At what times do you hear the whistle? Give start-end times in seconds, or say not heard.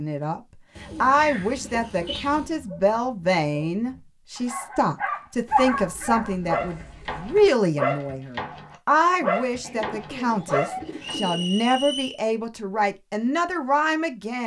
11.0-12.2.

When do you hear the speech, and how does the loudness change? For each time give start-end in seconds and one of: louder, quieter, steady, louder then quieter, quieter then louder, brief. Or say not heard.
0.0-14.4 steady.